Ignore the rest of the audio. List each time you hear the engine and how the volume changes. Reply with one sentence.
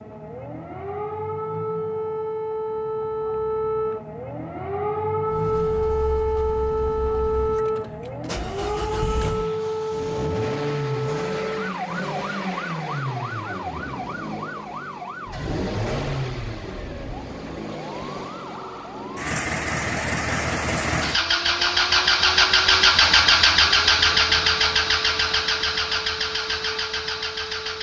The engine can be heard from 5.2 to 27.7 s, getting louder.